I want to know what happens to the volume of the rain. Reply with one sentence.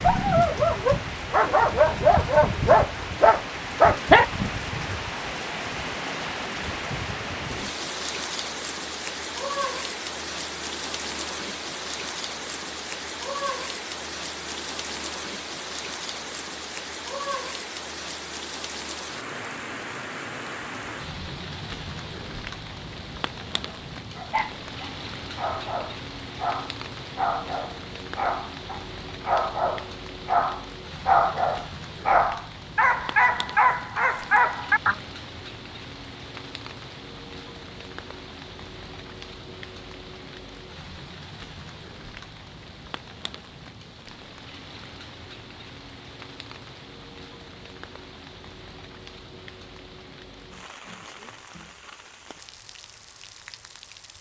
The loudness of the rain goes down.